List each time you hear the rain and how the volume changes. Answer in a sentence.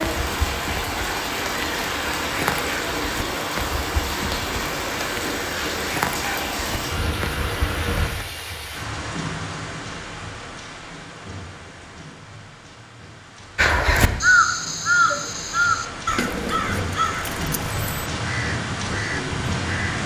You can hear the rain from 0.0 to 20.0 s, getting quieter then louder.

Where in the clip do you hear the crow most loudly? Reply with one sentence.
The volume of the crow peaks at 14 seconds.